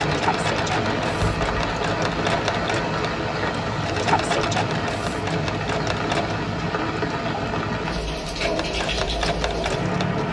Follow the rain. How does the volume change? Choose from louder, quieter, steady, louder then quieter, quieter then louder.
steady.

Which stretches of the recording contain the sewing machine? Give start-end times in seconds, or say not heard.
0.0-6.3, 8.4-10.2.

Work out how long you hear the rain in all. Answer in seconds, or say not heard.
10 s.